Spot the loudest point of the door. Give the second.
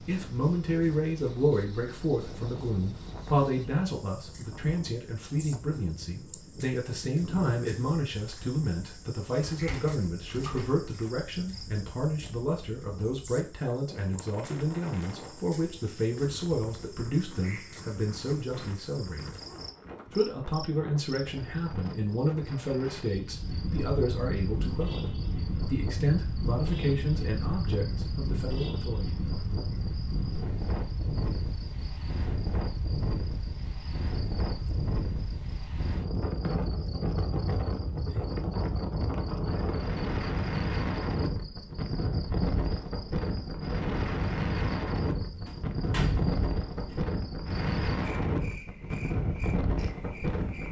46 s.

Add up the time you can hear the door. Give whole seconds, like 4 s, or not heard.
3 s.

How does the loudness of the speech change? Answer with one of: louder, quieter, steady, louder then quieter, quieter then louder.
steady.